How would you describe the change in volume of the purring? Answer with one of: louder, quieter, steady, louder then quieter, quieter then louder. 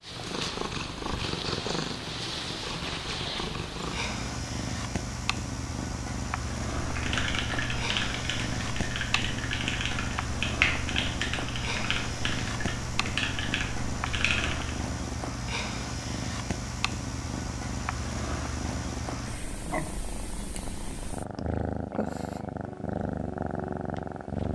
steady.